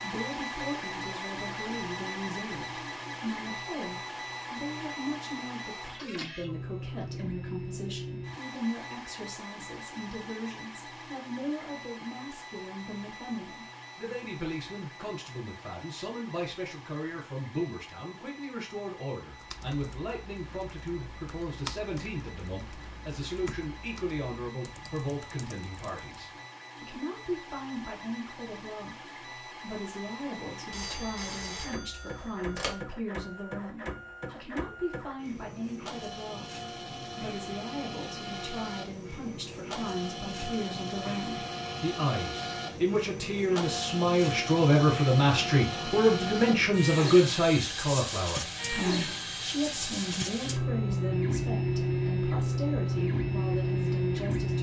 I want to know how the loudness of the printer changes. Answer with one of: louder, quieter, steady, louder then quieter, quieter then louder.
quieter then louder.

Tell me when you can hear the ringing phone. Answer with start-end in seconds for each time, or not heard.
30.7-32.8.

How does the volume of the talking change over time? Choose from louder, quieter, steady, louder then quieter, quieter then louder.
louder.